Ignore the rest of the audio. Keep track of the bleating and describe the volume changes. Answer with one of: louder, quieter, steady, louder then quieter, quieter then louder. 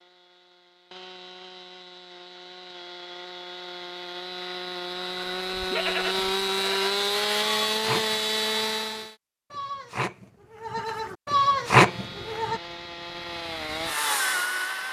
quieter then louder.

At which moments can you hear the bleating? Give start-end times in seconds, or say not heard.
5.0-12.6.